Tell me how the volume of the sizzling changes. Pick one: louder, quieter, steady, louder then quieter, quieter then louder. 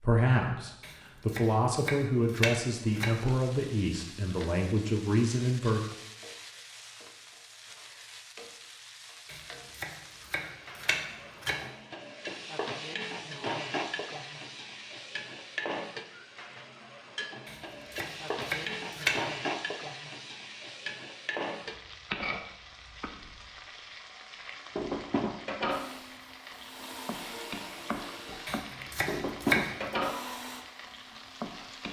louder.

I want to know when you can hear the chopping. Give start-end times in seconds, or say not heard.
0.8-3.2, 9.2-11.7, 17.4-19.2, 28.4-29.9.